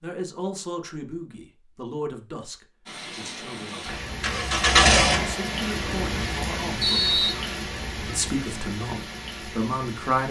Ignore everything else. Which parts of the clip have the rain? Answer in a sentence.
You can hear the rain from 2.9 to 10.2 s.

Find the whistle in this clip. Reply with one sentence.
The whistle can be heard from 6.8 to 7.4 s.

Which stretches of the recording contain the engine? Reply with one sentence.
You can hear the engine from 4.0 to 6.2 s.